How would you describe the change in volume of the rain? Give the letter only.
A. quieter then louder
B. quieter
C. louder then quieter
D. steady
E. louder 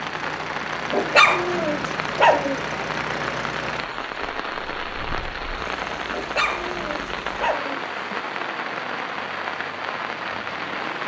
D.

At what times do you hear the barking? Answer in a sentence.
You can hear the barking from 0.9 to 2.6 s and from 6.1 to 7.8 s.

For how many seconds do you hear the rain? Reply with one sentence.
You can hear the rain for 11 seconds altogether.